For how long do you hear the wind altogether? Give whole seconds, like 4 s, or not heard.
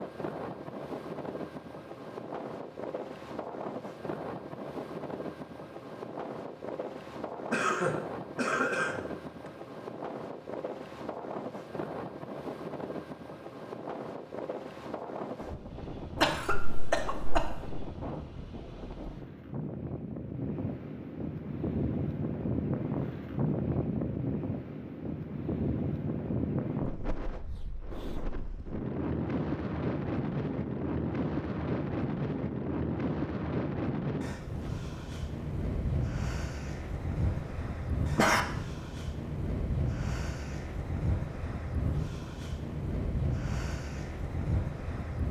45 s.